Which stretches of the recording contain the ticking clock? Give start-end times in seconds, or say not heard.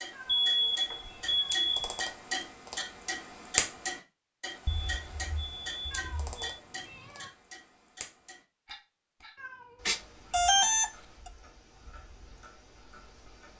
0.0-13.5.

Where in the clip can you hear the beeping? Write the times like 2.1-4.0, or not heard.
0.2-2.0, 4.7-6.5, 9.8-10.9.